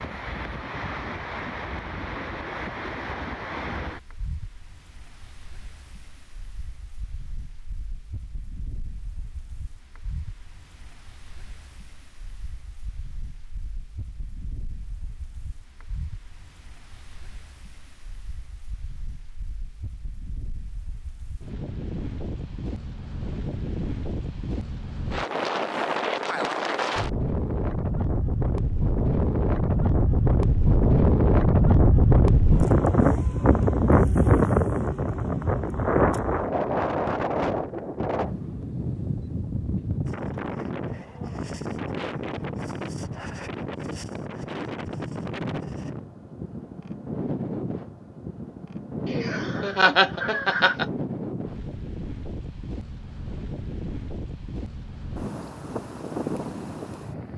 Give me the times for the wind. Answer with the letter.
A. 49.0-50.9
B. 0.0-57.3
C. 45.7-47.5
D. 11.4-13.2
B.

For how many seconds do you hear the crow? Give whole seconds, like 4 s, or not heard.
not heard.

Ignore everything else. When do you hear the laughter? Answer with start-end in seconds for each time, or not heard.
49.0-50.9.